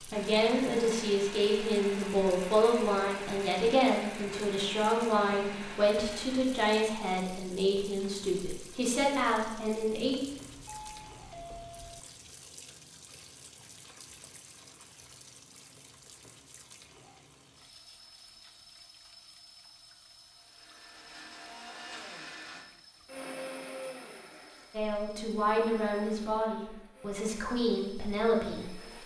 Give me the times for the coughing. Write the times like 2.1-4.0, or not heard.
not heard.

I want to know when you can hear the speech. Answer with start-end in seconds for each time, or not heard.
0.0-10.2, 24.7-29.0.